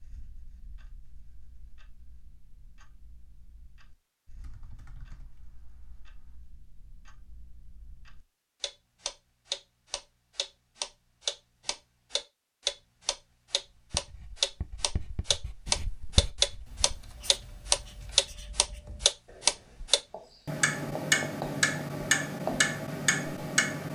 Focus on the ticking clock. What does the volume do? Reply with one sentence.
The loudness of the ticking clock goes up.